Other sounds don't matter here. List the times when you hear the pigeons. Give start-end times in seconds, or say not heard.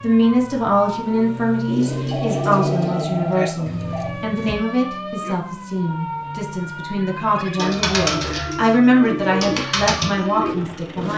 1.6-4.5, 7.5-11.1.